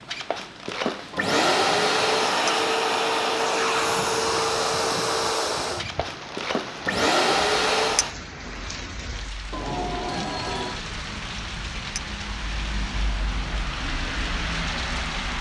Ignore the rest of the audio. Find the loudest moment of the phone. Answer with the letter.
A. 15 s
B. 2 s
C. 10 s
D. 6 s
C.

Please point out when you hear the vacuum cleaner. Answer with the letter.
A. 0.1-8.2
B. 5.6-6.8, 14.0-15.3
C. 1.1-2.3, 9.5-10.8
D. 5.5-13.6
A.